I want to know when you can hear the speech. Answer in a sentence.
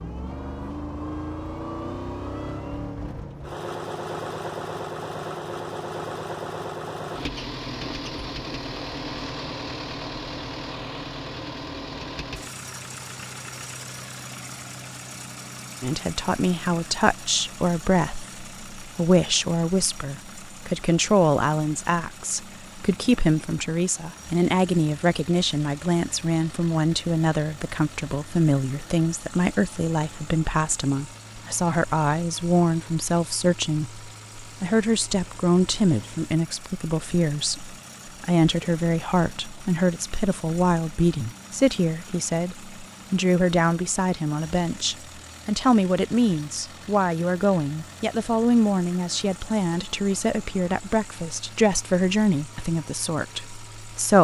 The speech can be heard from 15.8 to 54.1 s.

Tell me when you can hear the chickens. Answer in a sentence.
You can't hear the chickens here.